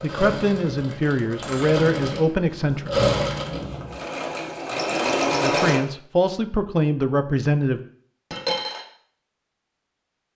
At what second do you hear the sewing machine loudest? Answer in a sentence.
The loudest moment of the sewing machine is at 5 seconds.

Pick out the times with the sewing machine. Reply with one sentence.
You can hear the sewing machine from 0.0 to 5.8 s.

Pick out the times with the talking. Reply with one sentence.
You can hear the talking from 0.0 to 3.1 s and from 5.4 to 7.8 s.